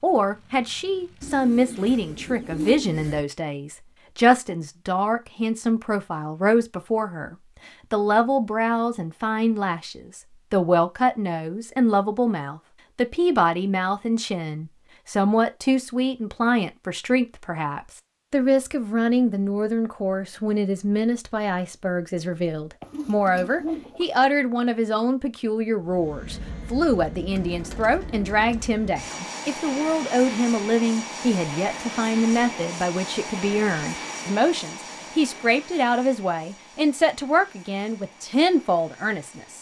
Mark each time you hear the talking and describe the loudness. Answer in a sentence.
The talking can be heard from 0.0 to 39.5 s, at a steady volume.